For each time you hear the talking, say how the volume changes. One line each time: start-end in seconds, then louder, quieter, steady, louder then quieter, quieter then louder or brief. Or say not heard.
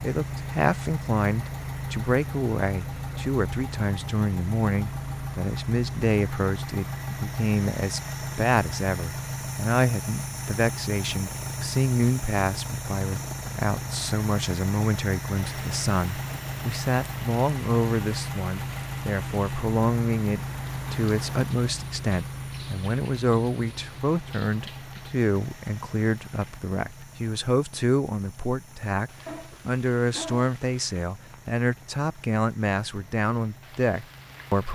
0.0-34.7 steady.